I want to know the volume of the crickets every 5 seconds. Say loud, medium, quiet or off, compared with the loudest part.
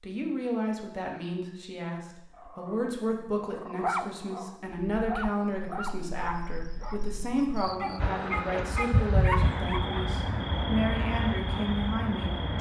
off, loud, loud.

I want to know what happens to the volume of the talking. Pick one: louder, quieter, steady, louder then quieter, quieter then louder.
steady.